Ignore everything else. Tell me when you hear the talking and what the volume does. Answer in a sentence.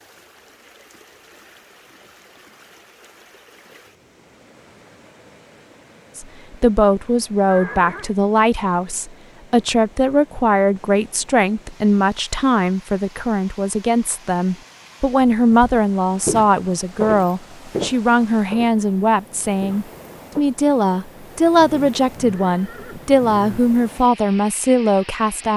The talking can be heard from 6.2 to 25.5 s, at a steady volume.